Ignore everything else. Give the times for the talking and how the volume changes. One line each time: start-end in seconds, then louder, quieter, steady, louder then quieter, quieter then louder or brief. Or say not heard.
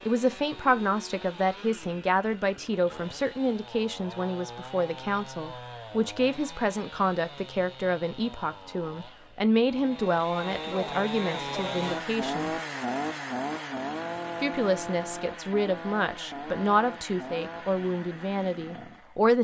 0.1-12.5 steady
14.4-19.3 louder then quieter.